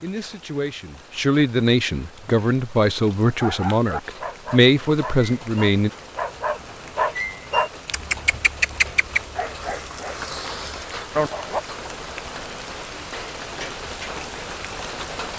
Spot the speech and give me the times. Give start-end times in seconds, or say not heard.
0.0-5.9.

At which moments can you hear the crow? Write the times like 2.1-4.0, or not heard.
not heard.